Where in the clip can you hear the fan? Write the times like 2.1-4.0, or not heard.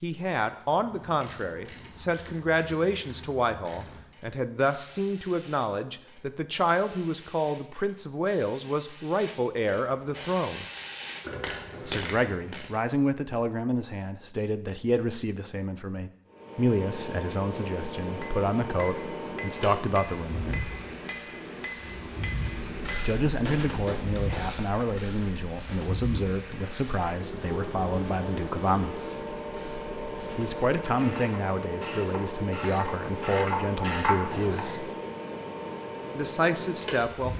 16.3-37.3.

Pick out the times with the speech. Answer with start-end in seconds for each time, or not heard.
0.0-10.7, 11.8-20.7, 23.0-29.0, 30.4-34.9, 36.1-37.3.